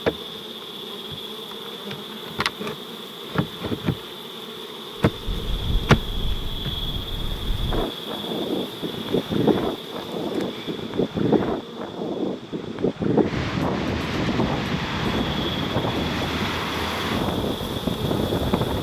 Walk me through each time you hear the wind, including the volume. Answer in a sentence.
The wind can be heard from 5.0 to 18.7 s, getting louder.